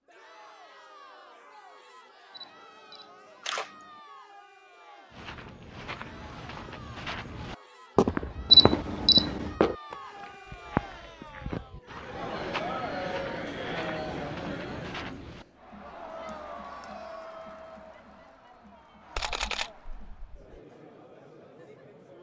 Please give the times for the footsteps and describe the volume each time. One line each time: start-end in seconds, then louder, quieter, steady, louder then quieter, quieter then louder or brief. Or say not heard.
5.1-15.4 louder then quieter.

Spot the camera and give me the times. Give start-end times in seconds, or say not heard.
2.4-3.7, 8.5-9.6, 19.1-20.6.